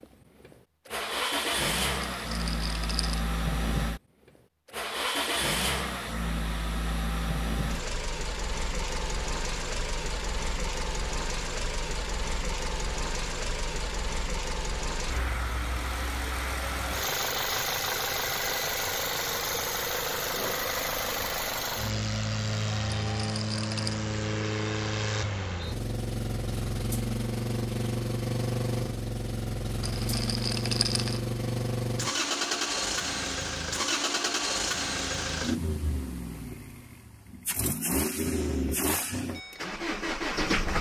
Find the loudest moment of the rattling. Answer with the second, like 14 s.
31 s.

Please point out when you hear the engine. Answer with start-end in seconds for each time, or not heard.
0.0-40.7.